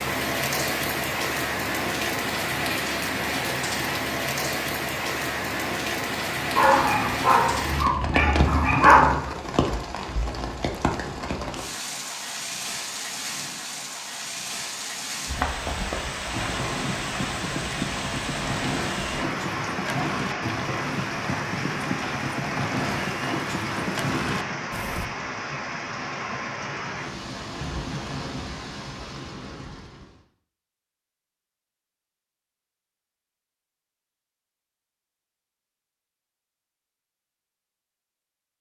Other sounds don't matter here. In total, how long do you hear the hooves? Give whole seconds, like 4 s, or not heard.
10 s.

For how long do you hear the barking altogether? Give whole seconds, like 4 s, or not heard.
3 s.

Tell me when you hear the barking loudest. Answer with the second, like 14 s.
9 s.